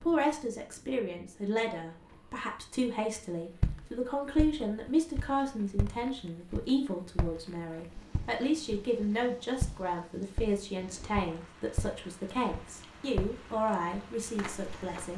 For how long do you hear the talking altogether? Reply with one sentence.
You can hear the talking for 15 seconds altogether.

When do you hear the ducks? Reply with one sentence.
You can't hear the ducks here.